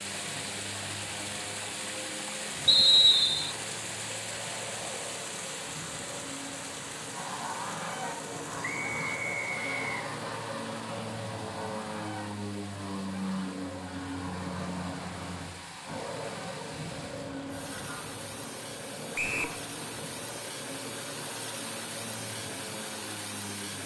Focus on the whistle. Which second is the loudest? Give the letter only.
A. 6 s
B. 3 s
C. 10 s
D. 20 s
B.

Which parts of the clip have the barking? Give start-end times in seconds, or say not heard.
not heard.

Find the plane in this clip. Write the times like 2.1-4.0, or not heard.
0.0-23.8.